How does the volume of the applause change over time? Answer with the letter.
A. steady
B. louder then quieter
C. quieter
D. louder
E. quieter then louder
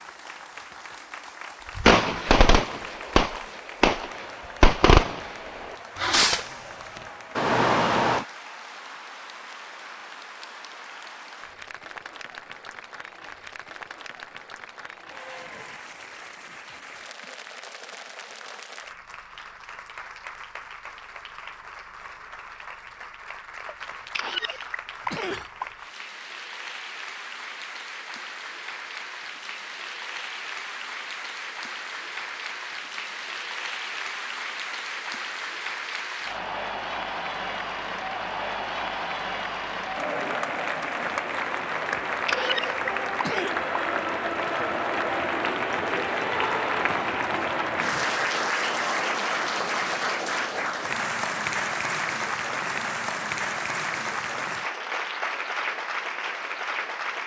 D.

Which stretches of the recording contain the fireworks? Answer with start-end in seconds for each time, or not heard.
1.8-5.3, 6.0-8.2.